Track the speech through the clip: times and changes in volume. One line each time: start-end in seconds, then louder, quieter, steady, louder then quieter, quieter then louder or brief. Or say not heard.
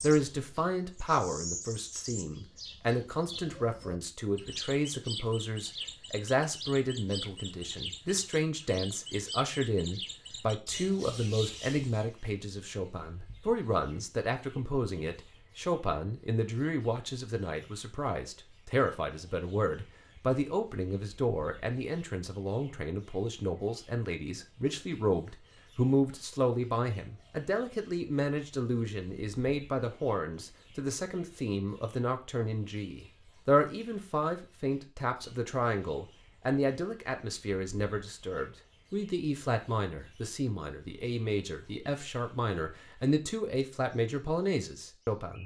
0.0-45.4 steady.